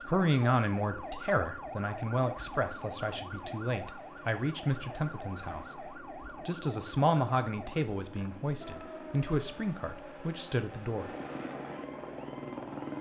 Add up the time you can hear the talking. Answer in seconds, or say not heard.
11 s.